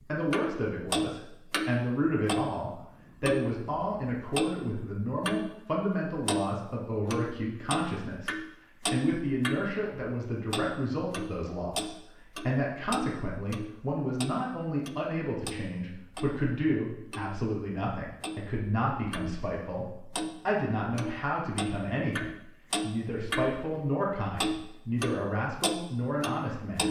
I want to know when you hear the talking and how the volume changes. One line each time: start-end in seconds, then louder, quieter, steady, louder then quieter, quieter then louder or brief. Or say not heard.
0.1-26.8 steady.